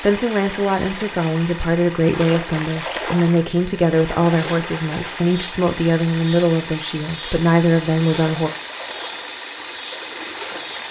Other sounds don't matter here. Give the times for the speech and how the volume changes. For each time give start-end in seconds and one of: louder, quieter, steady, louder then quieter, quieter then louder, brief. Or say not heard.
0.0-8.5 steady.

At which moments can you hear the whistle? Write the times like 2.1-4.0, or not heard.
not heard.